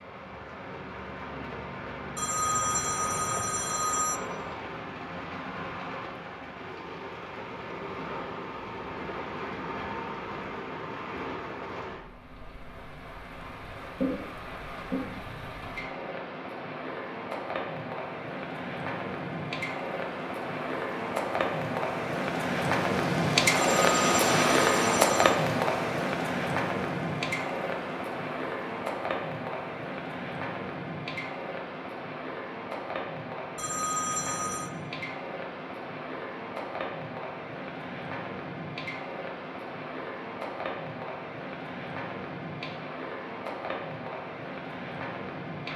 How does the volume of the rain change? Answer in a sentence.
The volume of the rain goes up, then down.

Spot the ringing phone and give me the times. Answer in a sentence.
You can hear the ringing phone from 2.1 to 4.2 s, from 23.6 to 25.4 s and from 33.5 to 34.7 s.